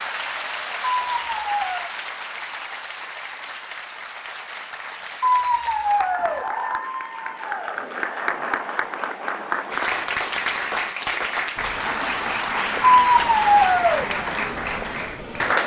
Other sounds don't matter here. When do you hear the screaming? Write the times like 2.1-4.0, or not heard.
1.0-1.9, 5.2-6.5, 12.9-14.1.